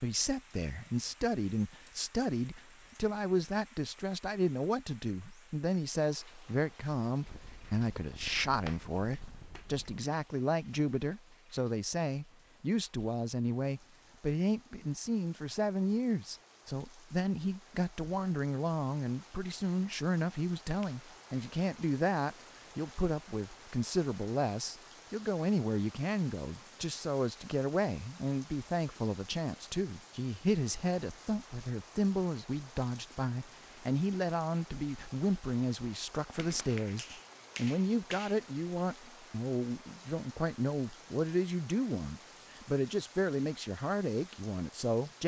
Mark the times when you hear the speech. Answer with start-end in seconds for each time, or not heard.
0.0-45.2.